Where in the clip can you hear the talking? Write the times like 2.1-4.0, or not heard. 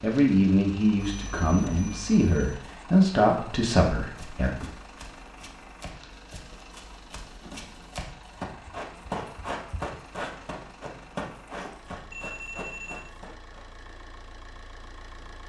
0.0-4.7.